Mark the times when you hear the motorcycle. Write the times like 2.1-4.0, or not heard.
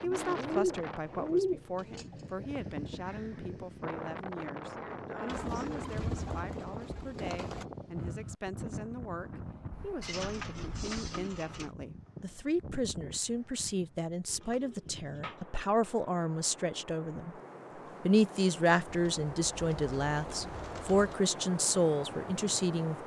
not heard.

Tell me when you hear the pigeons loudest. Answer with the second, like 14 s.
1 s.